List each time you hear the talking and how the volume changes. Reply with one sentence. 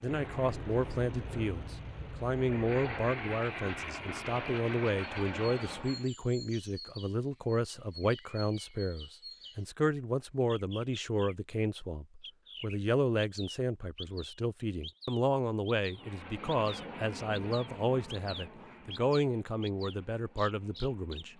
You can hear the talking from 0.0 to 21.3 s, at a steady volume.